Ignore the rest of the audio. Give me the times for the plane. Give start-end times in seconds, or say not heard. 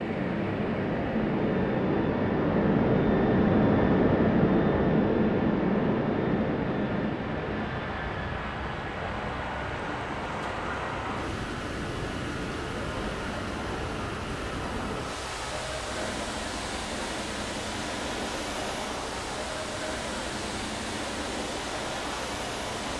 0.0-22.9.